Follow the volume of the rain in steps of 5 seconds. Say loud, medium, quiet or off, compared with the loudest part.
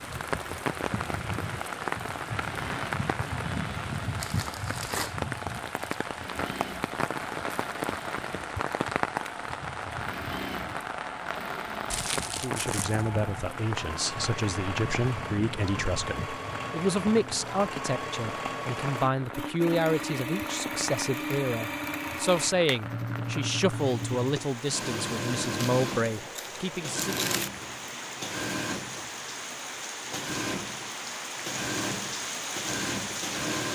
loud, loud, loud, medium, medium, medium, loud.